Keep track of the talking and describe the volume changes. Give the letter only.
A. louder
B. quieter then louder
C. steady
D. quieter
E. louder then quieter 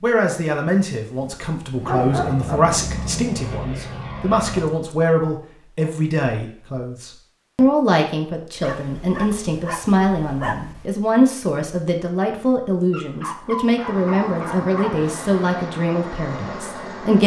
C.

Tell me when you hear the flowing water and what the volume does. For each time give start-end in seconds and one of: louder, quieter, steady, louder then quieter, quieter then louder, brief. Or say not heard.
not heard.